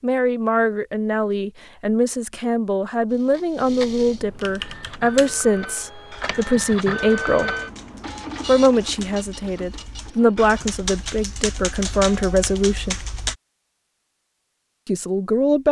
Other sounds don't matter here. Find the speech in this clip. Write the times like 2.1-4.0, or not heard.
0.0-7.5, 8.4-13.0, 14.8-15.6.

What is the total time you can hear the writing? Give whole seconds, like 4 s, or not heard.
not heard.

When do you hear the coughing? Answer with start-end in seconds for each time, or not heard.
not heard.